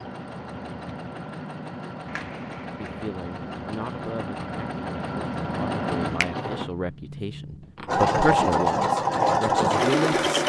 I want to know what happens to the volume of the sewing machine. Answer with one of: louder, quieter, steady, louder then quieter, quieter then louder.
louder.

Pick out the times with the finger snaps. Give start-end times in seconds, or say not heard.
2.0-3.1.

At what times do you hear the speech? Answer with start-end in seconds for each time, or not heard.
2.8-10.4.